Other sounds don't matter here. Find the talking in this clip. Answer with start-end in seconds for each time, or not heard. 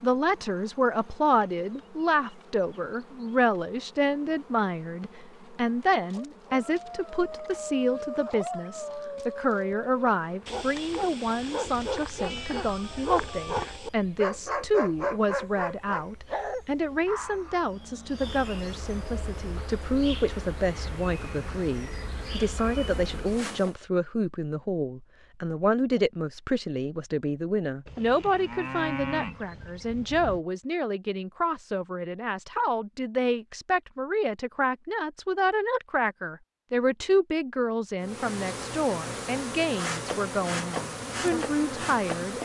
0.0-42.3.